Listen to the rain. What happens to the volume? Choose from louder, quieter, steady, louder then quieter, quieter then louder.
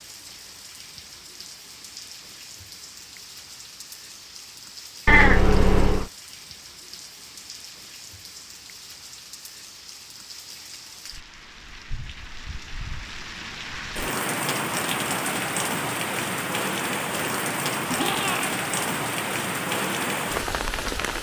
louder.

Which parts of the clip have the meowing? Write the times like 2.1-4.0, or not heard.
5.0-6.1, 17.9-18.6.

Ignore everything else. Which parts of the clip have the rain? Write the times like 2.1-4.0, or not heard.
0.0-21.1.